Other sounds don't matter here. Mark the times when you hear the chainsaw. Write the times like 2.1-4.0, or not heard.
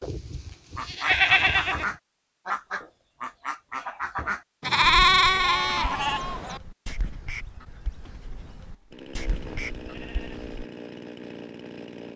8.9-12.1.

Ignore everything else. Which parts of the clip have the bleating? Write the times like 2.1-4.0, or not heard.
0.0-1.9, 4.6-6.6, 8.3-10.4.